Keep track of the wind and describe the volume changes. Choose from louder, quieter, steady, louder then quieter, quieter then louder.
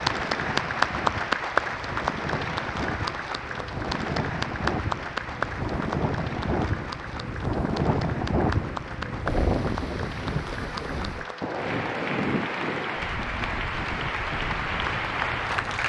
louder then quieter.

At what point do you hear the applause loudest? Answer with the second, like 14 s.
1 s.